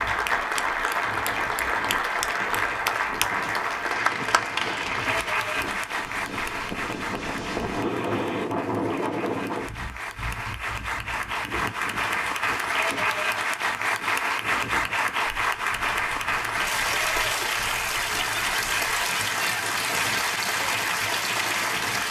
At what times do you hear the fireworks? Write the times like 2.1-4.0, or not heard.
not heard.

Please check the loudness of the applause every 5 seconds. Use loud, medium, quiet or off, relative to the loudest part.
loud, medium, loud, loud, loud.